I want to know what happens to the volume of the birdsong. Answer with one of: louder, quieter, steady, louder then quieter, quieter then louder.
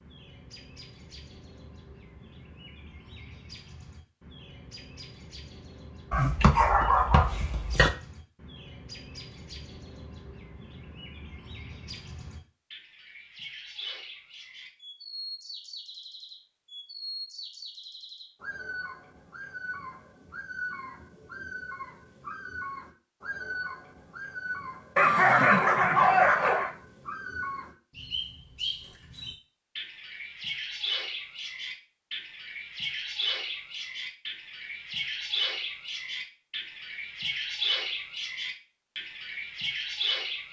louder.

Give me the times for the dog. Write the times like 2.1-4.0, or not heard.
6.1-7.9, 24.9-26.7.